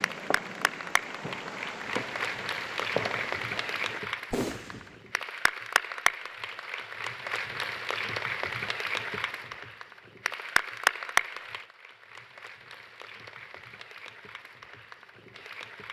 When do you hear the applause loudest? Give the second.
11 s.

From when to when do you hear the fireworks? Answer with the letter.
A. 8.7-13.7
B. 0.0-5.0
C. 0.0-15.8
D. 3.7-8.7
B.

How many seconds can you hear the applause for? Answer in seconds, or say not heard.
16 s.